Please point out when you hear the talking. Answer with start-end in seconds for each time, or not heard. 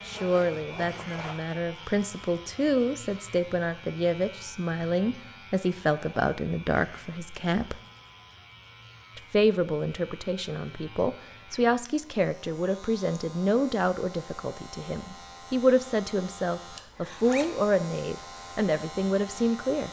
0.1-7.8, 9.2-19.8.